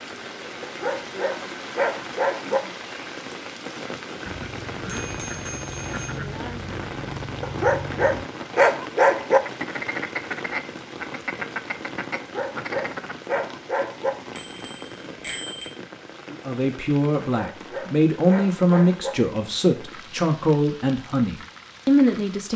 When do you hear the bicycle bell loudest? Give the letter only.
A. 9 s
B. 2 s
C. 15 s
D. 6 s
C.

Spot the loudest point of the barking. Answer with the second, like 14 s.
9 s.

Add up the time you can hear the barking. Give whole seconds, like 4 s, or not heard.
8 s.